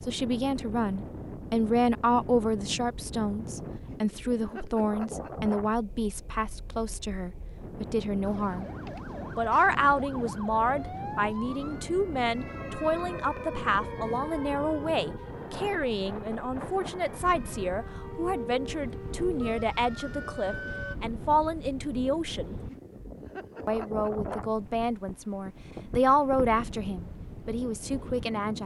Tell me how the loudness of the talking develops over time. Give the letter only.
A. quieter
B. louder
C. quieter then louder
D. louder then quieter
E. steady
E.